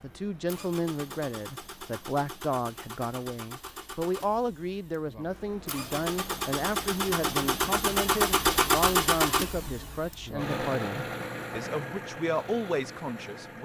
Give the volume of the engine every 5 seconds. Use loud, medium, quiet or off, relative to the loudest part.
quiet, loud, medium.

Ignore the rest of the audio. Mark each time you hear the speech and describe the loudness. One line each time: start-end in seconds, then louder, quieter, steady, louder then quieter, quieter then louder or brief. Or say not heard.
0.0-13.6 steady.